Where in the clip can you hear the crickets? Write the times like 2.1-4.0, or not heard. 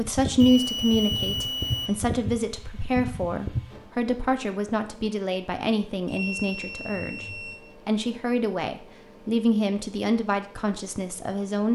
not heard.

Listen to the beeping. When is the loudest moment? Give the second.
1 s.